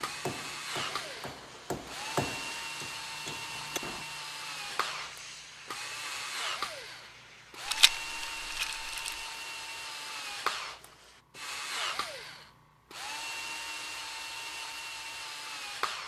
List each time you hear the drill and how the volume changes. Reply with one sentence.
You can hear the drill from 0.0 to 16.0 s, at a steady volume.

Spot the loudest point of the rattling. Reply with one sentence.
The volume of the rattling peaks at 8 seconds.